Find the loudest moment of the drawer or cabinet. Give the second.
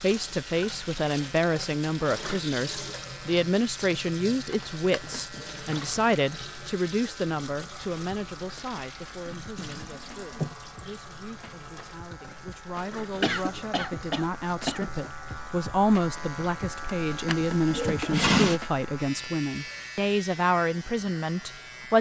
18 s.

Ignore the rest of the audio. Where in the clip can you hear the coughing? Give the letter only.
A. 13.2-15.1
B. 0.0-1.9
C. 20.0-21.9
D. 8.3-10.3
A.